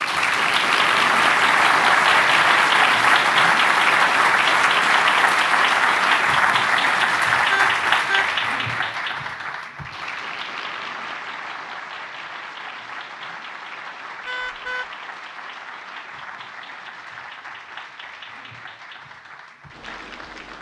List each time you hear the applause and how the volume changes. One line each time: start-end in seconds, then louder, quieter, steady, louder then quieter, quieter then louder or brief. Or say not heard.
0.0-20.5 quieter.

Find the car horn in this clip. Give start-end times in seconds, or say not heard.
7.5-8.2, 14.2-14.8.